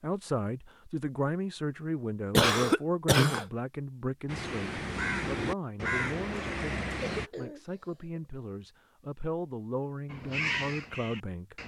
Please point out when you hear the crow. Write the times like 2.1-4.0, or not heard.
4.2-7.3, 10.1-11.6.